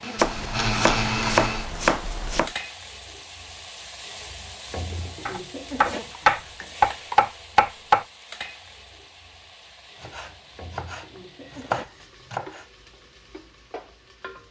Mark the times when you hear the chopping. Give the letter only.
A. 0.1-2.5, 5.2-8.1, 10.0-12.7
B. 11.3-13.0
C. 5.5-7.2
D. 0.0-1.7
A.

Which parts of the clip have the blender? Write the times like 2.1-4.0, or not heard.
0.0-1.7.